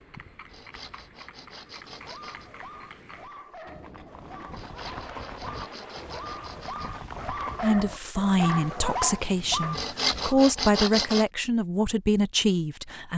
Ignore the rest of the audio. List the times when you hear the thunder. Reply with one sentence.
The thunder can be heard from 3.6 to 6.7 s.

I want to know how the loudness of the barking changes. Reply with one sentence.
The loudness of the barking goes up.